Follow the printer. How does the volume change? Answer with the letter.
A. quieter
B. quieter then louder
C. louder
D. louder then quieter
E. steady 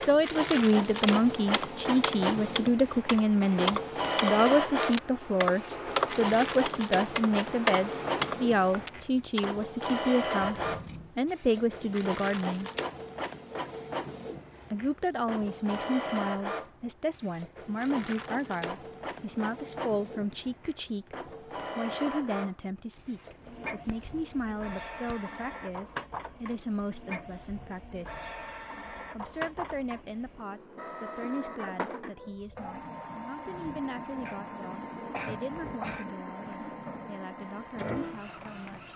A.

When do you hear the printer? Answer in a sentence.
You can hear the printer from 0.0 to 38.9 s.